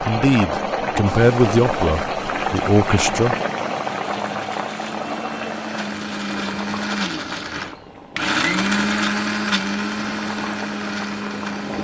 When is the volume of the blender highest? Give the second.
9 s.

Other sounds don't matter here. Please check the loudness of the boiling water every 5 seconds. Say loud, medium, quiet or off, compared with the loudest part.
loud, medium, medium.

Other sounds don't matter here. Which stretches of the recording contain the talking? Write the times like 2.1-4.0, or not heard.
0.0-3.4.